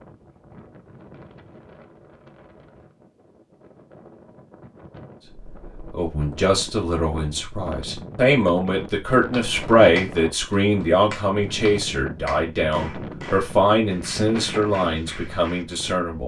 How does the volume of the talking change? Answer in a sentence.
The volume of the talking goes up, then down.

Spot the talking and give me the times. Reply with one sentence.
You can hear the talking from 5.9 to 16.2 s.